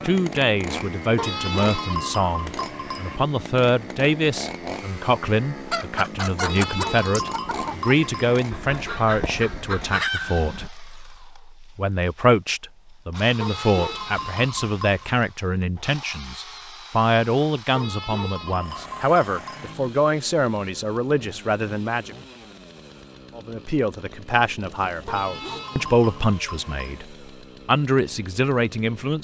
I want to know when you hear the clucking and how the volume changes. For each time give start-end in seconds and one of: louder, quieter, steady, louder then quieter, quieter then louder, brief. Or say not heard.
5.7-10.7 quieter then louder.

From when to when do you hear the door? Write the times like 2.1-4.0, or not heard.
not heard.